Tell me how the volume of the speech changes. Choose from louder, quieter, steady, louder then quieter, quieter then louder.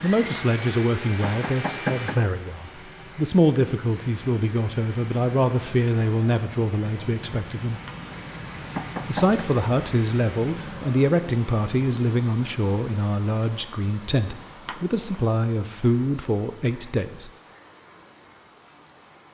steady.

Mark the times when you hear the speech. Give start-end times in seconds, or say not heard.
0.0-7.8, 9.1-17.3.